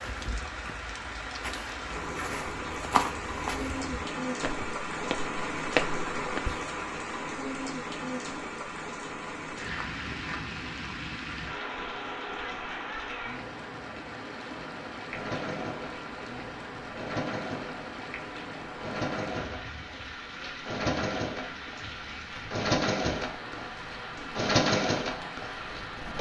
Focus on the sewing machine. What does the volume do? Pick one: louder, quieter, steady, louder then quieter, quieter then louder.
louder.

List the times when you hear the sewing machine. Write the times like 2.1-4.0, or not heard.
15.1-26.1.